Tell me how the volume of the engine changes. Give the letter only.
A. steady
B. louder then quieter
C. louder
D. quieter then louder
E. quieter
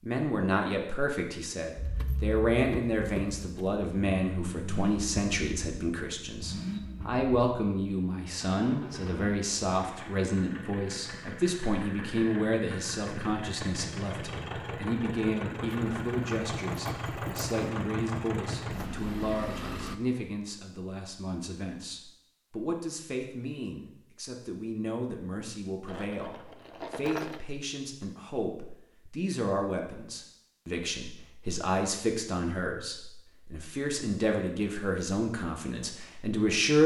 D.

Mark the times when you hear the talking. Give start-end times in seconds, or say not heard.
0.0-36.8.